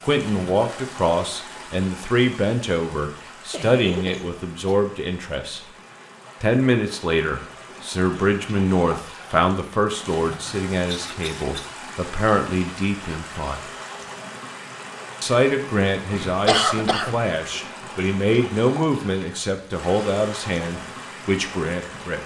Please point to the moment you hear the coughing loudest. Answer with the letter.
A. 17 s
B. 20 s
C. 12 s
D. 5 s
A.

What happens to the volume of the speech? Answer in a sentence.
The loudness of the speech stays about the same.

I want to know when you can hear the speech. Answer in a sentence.
The speech can be heard from 0.0 to 5.6 s, from 6.4 to 13.6 s and from 15.2 to 22.2 s.